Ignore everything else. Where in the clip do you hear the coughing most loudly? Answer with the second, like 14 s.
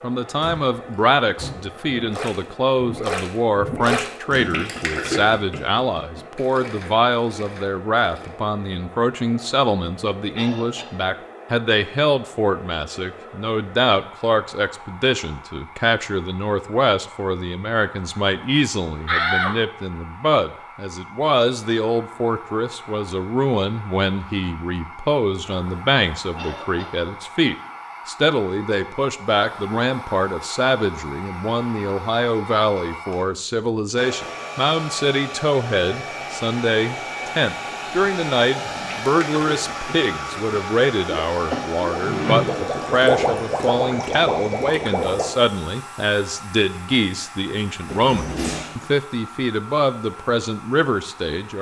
42 s.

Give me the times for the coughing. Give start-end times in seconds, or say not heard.
10.3-11.0, 26.4-27.0, 41.5-42.7.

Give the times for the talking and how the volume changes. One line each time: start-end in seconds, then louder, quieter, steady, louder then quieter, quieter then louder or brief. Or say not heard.
0.0-51.5 steady.